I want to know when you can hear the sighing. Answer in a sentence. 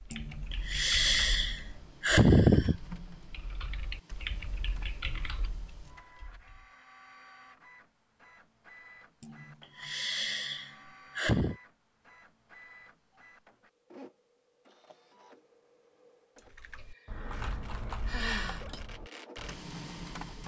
You can hear the sighing from 0.1 to 2.8 s, from 9.2 to 11.6 s and from 16.4 to 18.6 s.